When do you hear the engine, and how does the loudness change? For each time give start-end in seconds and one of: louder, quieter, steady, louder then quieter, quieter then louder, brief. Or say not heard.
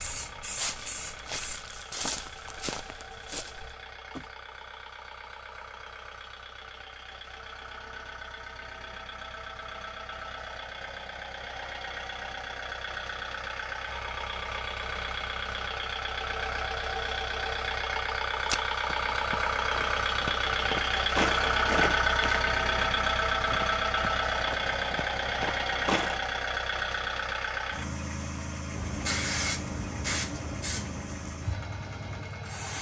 0.0-32.7 louder then quieter.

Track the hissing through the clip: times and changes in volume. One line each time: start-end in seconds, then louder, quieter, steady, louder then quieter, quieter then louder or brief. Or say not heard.
0.0-1.6 brief
28.7-32.7 quieter.